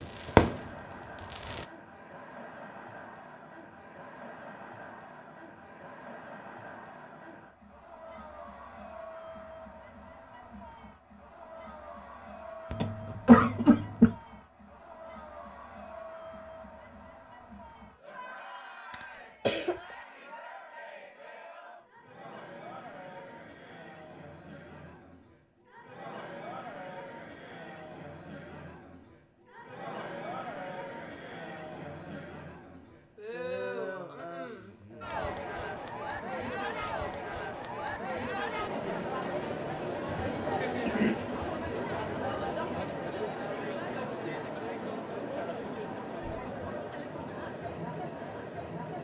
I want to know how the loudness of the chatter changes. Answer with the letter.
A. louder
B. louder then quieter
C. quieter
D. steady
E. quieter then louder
A.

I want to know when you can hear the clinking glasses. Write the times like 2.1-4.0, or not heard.
not heard.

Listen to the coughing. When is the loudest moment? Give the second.
13 s.